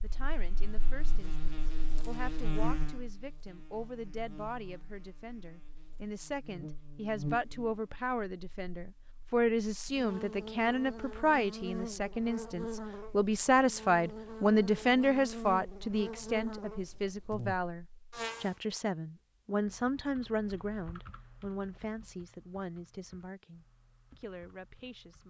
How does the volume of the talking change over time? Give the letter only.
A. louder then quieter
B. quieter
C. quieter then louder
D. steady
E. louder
A.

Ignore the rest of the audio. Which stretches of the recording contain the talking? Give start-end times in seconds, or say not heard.
0.0-25.2.